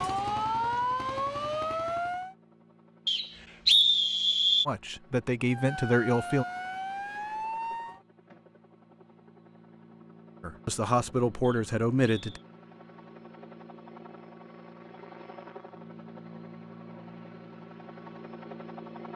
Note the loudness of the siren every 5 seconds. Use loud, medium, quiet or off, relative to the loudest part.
loud, medium, off, off.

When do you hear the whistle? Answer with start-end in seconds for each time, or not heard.
3.0-4.7, 11.4-12.4.